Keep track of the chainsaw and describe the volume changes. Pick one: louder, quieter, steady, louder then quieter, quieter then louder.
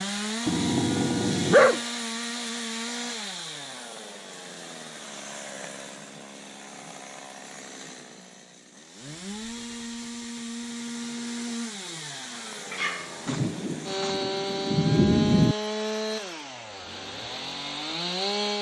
quieter then louder.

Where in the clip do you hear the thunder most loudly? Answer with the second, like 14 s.
15 s.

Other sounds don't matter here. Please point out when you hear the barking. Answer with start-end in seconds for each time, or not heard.
0.5-1.8, 12.7-14.2.